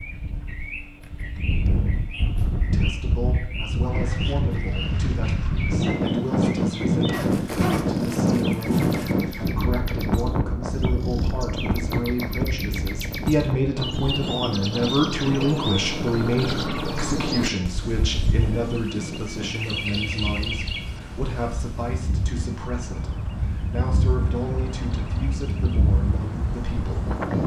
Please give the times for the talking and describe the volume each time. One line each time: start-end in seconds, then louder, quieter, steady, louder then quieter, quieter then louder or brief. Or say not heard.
2.6-27.1 louder then quieter.